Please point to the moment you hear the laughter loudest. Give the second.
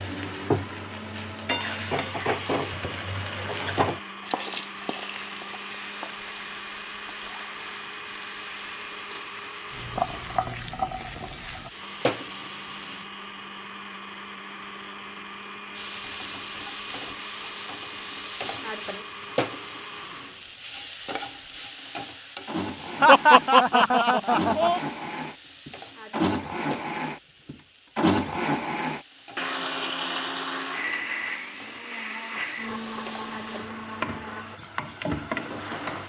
23 s.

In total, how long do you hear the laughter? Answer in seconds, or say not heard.
2 s.